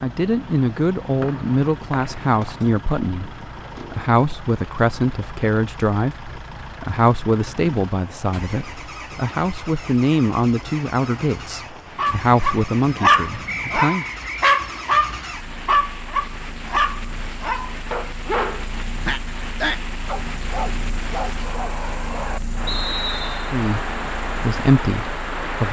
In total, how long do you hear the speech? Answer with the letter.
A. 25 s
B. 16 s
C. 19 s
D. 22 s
B.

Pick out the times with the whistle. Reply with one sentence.
You can hear the whistle from 1.2 to 2.6 s, from 13.4 to 14.3 s and from 22.6 to 23.5 s.